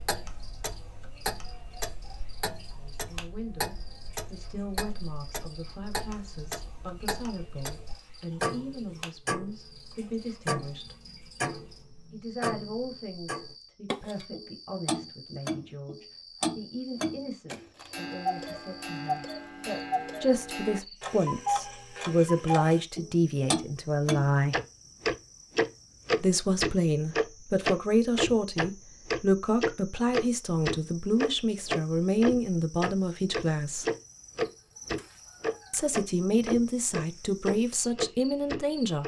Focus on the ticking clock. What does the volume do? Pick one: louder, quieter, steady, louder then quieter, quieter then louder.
louder.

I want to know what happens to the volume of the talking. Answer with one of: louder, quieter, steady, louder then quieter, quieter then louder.
louder.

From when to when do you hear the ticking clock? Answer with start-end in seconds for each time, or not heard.
0.0-39.0.